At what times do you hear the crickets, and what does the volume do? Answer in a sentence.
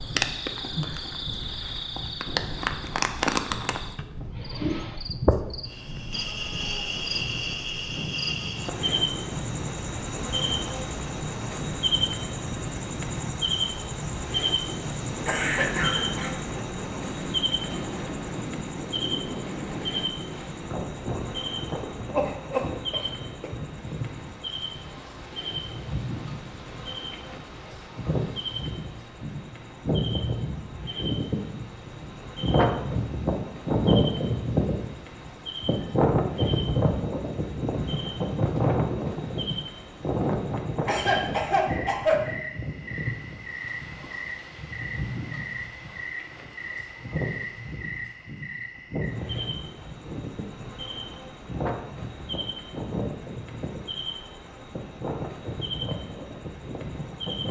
You can hear the crickets from 0.0 to 57.4 s, getting quieter.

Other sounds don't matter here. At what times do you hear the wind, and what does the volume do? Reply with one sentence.
The wind can be heard from 0.0 to 57.4 s, getting louder then quieter.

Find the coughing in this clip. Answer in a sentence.
The coughing can be heard from 15.2 to 16.4 s, from 22.1 to 23.5 s and from 40.9 to 42.3 s.